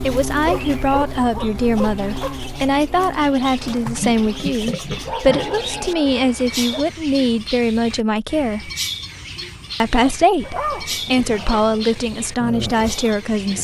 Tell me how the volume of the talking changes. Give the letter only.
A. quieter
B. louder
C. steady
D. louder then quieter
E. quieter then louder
C.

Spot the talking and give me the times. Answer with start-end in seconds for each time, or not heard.
0.0-8.7, 9.8-13.5.